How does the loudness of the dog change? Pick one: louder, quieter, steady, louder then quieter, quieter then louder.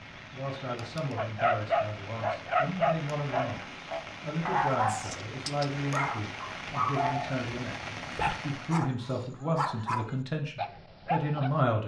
quieter.